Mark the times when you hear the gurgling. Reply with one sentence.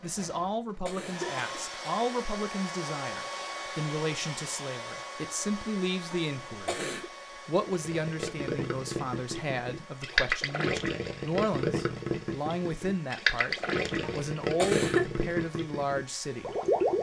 You can hear the gurgling from 7.7 to 16.9 s.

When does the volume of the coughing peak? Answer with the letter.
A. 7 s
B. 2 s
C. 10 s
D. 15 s
D.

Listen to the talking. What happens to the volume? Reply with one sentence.
The volume of the talking stays about the same.